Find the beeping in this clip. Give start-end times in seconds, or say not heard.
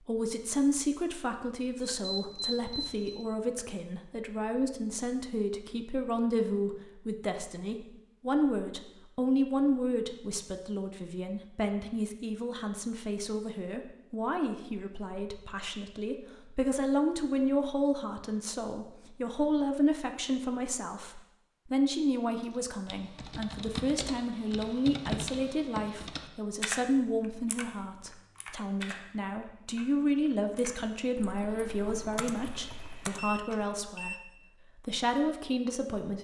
1.8-3.2, 32.5-34.2.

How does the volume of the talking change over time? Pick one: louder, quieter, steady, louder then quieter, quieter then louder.
steady.